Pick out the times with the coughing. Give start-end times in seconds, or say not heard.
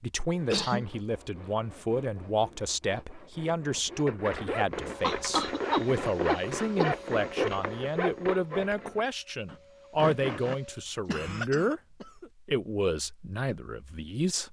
0.3-0.9, 5.0-6.9, 11.1-12.3.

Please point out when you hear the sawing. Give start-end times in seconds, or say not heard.
0.2-10.6.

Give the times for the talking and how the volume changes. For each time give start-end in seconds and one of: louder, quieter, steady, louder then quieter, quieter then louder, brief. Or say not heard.
0.0-14.4 steady.